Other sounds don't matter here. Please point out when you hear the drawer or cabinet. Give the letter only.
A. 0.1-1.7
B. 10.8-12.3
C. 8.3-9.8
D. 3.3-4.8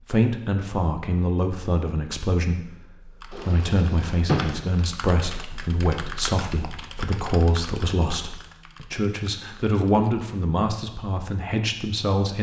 D.